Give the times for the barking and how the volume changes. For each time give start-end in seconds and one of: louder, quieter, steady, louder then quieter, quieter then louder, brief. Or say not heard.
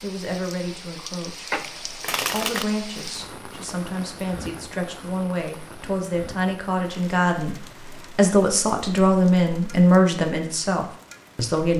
not heard.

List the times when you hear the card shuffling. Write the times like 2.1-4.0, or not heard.
1.5-2.6.